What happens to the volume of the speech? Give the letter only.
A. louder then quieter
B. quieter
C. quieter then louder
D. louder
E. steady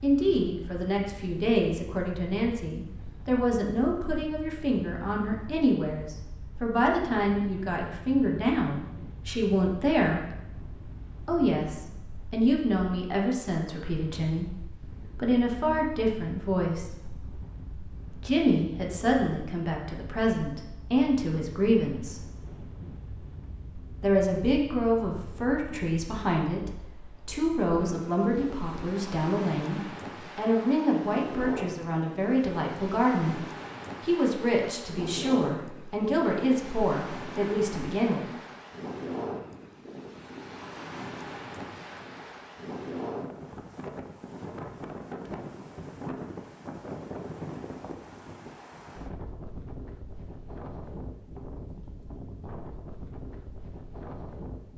E.